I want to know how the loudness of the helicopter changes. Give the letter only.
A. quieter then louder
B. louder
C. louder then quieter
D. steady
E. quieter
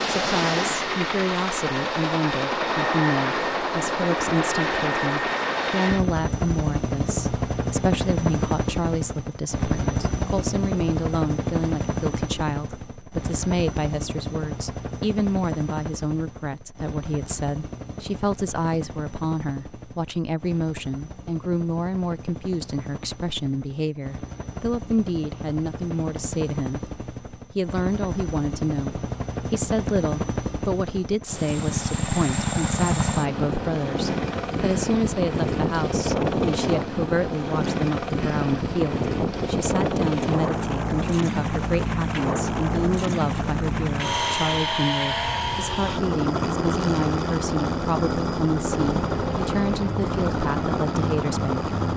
A.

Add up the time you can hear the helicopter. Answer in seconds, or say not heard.
52 s.